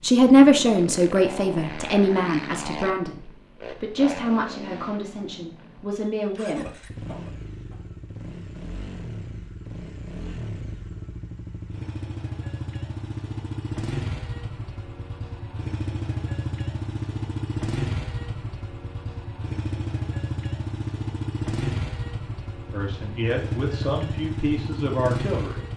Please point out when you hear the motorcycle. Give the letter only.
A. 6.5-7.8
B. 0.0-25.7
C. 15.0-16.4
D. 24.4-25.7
B.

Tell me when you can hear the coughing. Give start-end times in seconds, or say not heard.
6.5-7.8.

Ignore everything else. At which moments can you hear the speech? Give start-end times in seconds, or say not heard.
0.0-6.8, 22.7-25.6.